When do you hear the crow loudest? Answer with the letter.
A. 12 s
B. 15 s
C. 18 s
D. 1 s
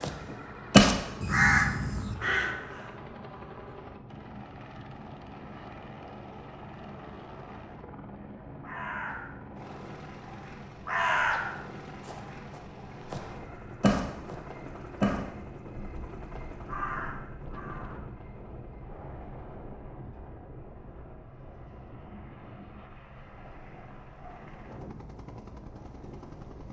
D.